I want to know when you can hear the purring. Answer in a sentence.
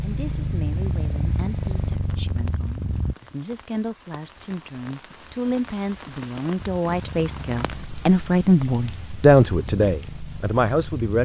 The purring can be heard from 0.0 to 3.1 s and from 6.5 to 11.1 s.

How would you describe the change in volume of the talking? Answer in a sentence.
The volume of the talking goes up.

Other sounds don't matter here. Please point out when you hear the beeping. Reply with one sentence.
The beeping can't be heard in this clip.